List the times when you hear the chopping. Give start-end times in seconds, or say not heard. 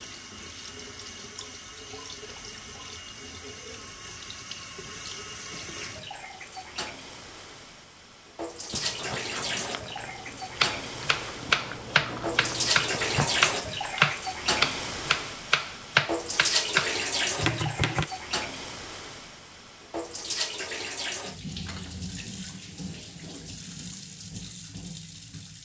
10.6-18.1.